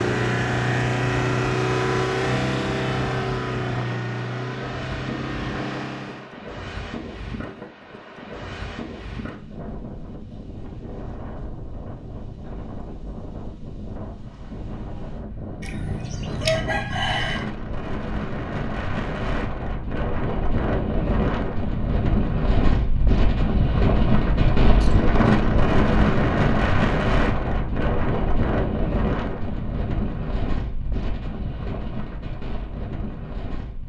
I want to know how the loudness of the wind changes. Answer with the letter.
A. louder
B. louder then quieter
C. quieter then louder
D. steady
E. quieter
B.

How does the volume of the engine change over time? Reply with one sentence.
The volume of the engine goes down.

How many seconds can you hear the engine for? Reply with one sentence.
The engine can be heard for 6 seconds in total.